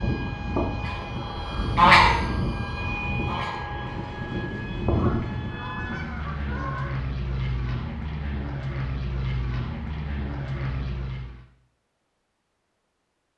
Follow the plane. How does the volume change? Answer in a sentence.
The loudness of the plane stays about the same.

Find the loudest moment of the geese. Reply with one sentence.
The loudest moment of the geese is at 2 seconds.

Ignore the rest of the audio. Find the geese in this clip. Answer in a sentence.
The geese can be heard from 0.8 to 6.9 s.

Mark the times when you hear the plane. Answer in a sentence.
You can hear the plane from 0.0 to 11.4 s.